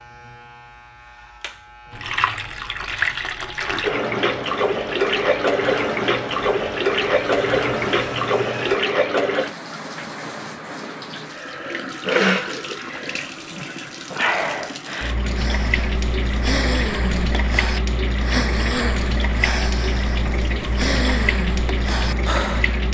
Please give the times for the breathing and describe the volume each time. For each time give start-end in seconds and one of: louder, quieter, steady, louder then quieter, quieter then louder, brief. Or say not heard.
15.3-22.8 steady.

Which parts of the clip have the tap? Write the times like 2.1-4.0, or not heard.
1.9-22.9.